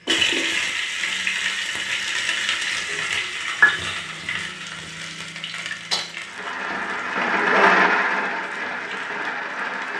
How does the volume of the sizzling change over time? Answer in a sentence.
The volume of the sizzling goes down.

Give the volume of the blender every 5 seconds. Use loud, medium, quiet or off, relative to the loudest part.
off, loud.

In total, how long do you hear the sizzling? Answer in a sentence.
You can hear the sizzling for 10 seconds altogether.